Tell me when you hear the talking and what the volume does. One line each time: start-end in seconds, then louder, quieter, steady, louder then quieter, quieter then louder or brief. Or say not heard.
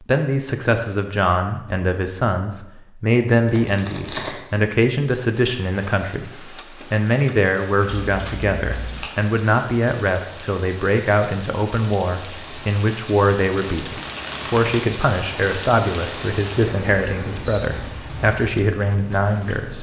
0.0-19.7 steady.